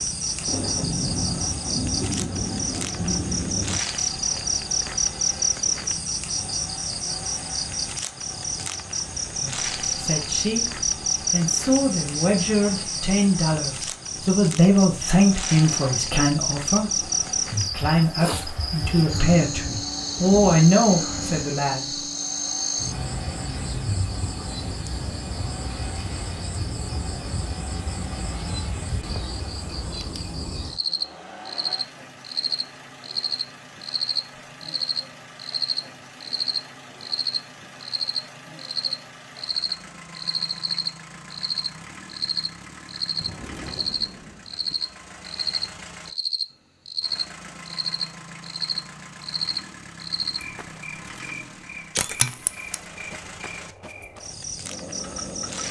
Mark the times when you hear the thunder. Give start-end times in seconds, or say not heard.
0.5-3.8, 18.9-21.4, 43.1-44.8.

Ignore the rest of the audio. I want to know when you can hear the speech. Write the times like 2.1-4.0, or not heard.
9.4-22.0.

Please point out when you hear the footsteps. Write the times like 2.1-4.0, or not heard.
not heard.